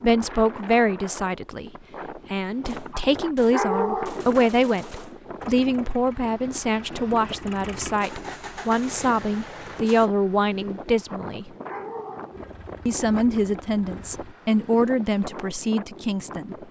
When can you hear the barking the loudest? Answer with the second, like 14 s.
4 s.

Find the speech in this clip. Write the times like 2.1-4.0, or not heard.
0.0-1.7, 2.3-11.5, 12.8-16.6.